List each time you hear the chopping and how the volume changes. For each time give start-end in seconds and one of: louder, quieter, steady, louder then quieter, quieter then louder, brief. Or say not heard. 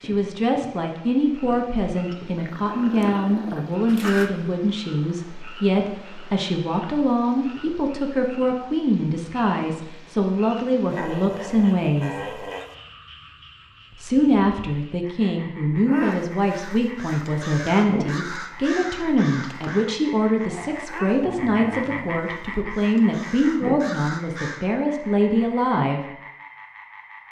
not heard.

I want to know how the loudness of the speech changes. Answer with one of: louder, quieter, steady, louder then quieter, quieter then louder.
steady.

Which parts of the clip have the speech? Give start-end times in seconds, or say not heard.
0.0-12.3, 13.9-26.1.